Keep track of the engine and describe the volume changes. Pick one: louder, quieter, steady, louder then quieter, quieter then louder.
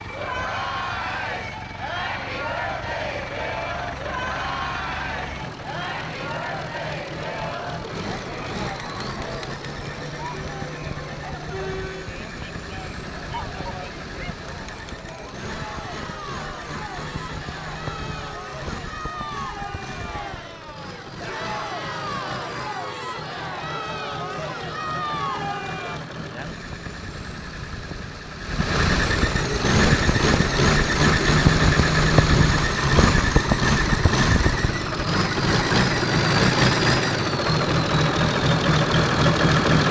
louder.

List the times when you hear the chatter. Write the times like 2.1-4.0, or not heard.
0.0-26.0.